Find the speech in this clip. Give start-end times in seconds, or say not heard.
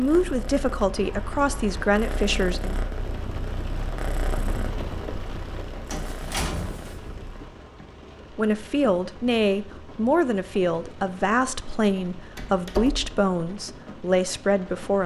0.0-2.8, 8.3-15.0.